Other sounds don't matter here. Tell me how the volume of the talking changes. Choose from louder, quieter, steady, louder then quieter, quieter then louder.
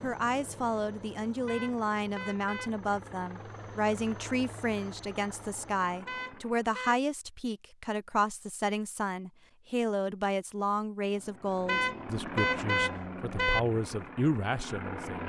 steady.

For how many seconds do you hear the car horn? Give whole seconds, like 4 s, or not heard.
4 s.